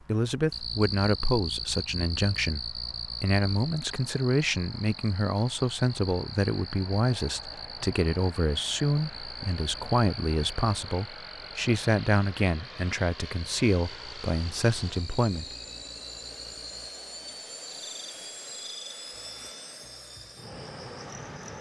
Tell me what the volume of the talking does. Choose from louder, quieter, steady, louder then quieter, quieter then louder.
steady.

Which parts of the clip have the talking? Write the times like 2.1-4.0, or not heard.
0.1-15.4.